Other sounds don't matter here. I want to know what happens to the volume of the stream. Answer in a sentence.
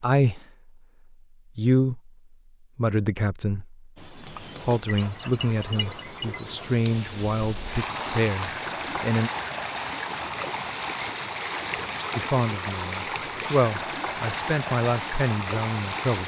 The volume of the stream stays about the same.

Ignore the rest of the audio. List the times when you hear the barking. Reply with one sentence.
The barking can be heard from 4.8 to 6.7 s.